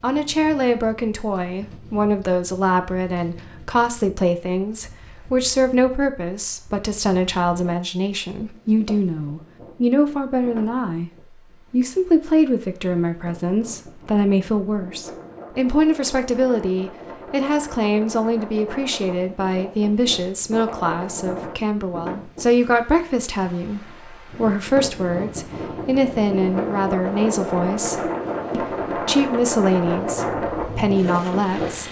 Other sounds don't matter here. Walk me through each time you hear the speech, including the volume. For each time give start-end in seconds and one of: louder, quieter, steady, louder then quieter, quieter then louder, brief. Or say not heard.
0.0-11.1 steady
11.7-31.8 steady.